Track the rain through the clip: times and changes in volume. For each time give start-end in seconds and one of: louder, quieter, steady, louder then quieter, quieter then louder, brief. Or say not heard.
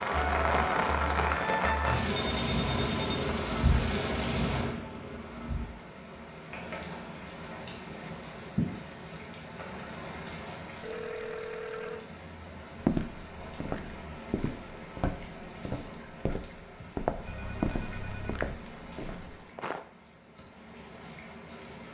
0.0-21.8 quieter.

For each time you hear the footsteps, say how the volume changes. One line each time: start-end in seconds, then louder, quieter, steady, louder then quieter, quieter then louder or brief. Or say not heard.
12.8-19.8 louder then quieter.